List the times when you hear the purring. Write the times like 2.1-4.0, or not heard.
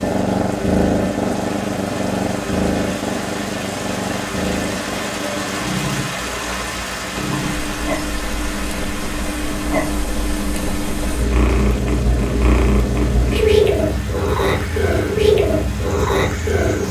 0.0-16.8.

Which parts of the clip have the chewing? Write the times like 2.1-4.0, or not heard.
not heard.